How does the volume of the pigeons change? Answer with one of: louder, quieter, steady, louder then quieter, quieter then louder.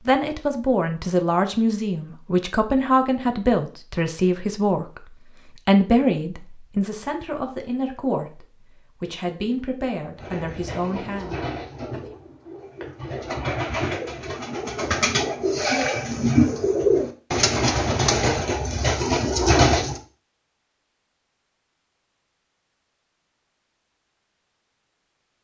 louder.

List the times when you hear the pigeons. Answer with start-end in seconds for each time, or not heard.
10.2-20.0.